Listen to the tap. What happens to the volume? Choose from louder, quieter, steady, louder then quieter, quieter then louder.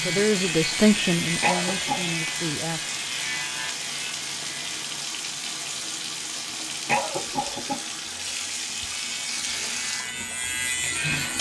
steady.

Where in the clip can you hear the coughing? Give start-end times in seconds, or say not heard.
1.4-2.1, 6.8-7.8.